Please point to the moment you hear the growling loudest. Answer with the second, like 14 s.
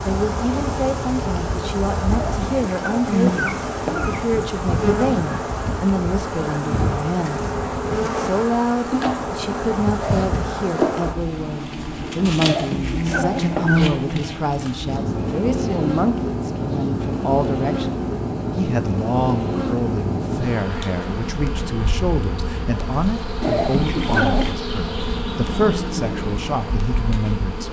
24 s.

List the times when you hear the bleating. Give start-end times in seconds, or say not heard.
not heard.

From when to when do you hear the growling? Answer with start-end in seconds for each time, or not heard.
2.1-4.2, 12.3-13.8, 23.4-24.6.